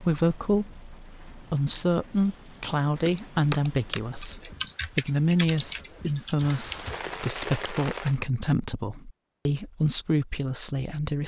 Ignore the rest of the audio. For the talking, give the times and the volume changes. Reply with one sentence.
You can hear the talking from 0.0 to 11.2 s, at a steady volume.